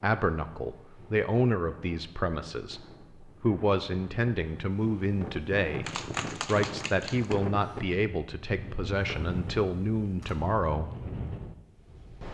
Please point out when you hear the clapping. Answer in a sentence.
The clapping can be heard from 5.8 to 7.4 s.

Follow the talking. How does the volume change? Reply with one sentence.
The loudness of the talking stays about the same.